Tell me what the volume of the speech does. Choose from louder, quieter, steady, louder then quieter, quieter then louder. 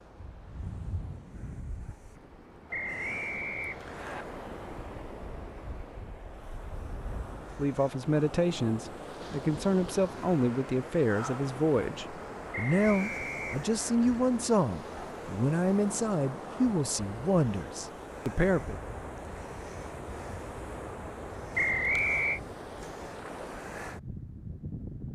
steady.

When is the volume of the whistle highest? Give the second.
22 s.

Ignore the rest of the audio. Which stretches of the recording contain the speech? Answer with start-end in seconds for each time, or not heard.
7.5-18.8.